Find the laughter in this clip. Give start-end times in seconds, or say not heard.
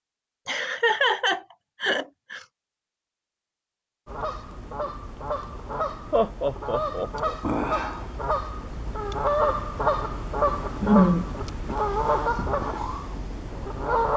0.5-2.4, 6.1-7.3, 10.8-11.2.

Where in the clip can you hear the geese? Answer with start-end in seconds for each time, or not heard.
4.0-14.1.